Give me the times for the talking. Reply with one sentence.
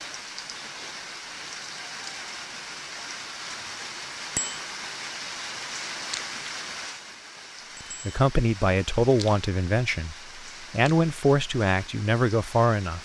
The talking can be heard from 8.1 to 13.0 s.